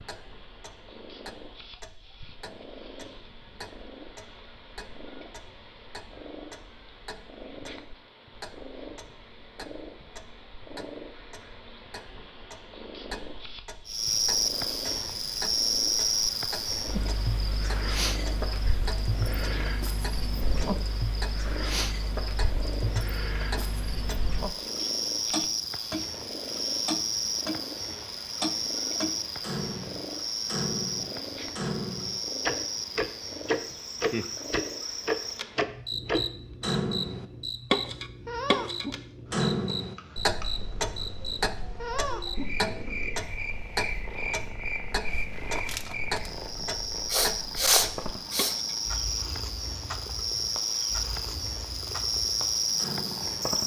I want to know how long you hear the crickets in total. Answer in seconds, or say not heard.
40 s.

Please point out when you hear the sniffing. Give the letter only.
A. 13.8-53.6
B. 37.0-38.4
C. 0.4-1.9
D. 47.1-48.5
D.